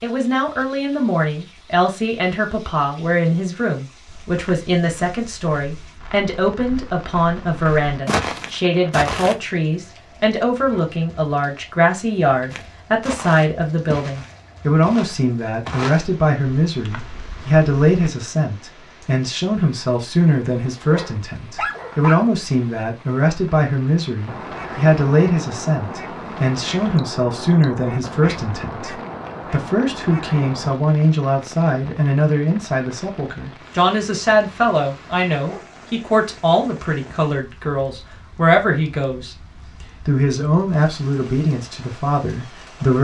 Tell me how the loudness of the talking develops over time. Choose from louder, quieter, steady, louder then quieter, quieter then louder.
steady.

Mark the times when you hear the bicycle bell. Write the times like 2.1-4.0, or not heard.
not heard.